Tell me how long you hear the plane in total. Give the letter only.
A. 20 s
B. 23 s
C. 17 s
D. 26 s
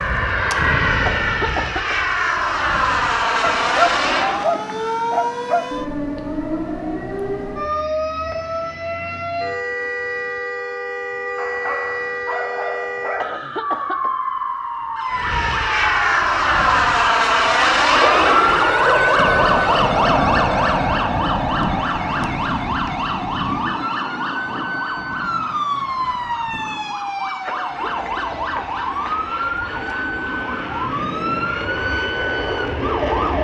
B.